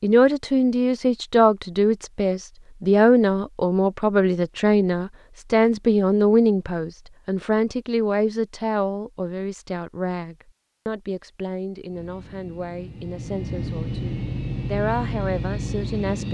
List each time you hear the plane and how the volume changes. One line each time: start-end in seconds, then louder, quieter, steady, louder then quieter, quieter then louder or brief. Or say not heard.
11.8-16.2 louder.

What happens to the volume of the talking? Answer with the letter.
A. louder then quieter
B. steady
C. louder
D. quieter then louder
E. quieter
E.